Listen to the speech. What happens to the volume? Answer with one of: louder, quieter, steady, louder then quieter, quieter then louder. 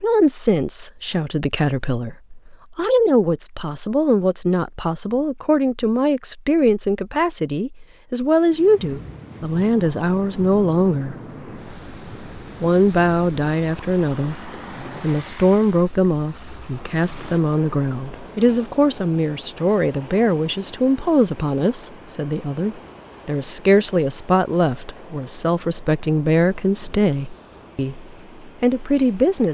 steady.